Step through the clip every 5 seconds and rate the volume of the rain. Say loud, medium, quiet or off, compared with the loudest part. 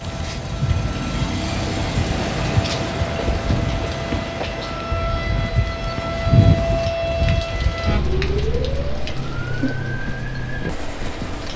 loud, medium, medium.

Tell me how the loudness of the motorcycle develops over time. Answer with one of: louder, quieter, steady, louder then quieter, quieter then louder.
quieter.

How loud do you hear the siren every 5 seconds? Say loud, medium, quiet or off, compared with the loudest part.
medium, loud, medium.